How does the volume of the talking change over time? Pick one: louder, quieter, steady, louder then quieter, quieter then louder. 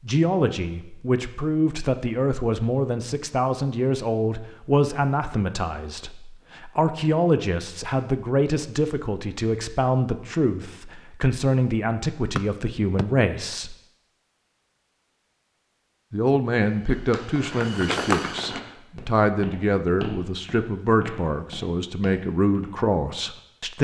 steady.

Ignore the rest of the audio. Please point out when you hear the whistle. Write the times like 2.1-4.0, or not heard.
12.3-13.1.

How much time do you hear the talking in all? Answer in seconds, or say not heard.
21 s.